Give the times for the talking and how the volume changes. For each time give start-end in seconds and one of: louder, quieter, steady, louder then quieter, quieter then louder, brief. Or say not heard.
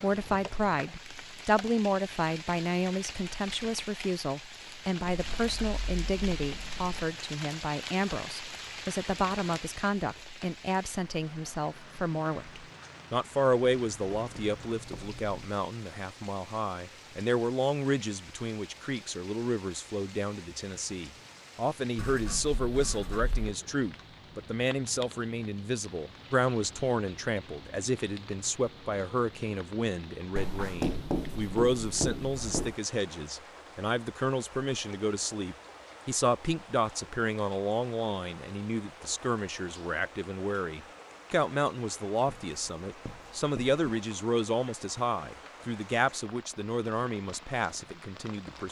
0.0-48.6 steady.